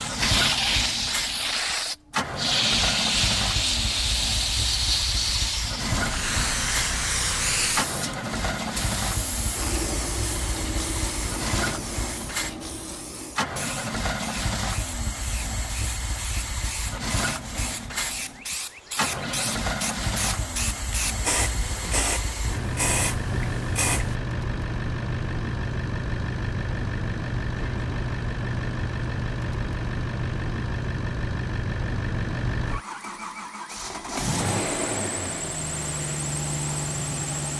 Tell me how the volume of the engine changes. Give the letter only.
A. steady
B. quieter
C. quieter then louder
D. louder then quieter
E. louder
A.